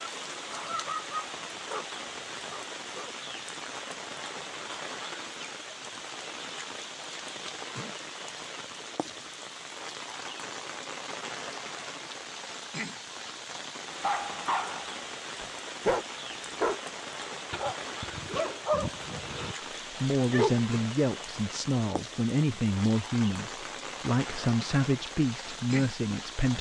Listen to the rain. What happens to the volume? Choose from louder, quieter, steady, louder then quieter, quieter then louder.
steady.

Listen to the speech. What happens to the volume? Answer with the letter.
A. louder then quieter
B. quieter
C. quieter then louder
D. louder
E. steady
E.